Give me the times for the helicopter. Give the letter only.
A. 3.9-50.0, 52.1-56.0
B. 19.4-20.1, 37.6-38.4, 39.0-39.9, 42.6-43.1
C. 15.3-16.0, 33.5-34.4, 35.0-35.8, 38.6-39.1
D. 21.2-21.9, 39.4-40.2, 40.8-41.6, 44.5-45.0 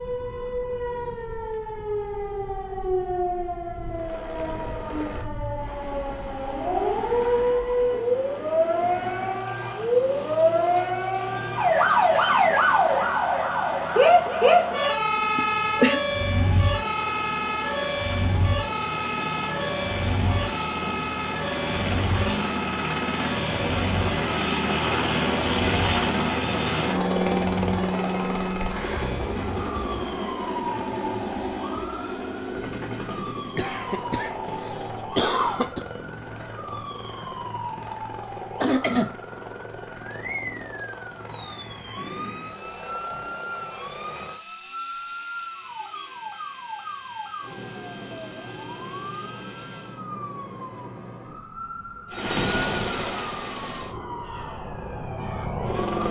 A.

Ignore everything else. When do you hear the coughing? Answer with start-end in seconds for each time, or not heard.
15.3-16.0, 33.5-34.4, 35.0-35.8, 38.6-39.1.